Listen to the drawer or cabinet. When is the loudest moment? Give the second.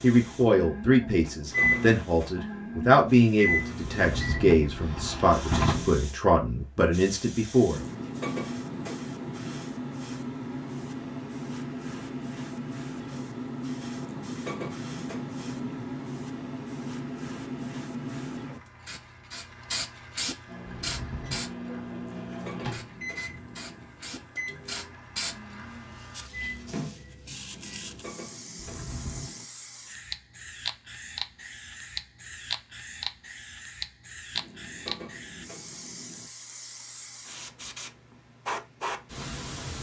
6 s.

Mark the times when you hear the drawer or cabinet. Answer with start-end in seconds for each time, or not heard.
3.8-6.0, 20.6-21.5, 28.6-29.3.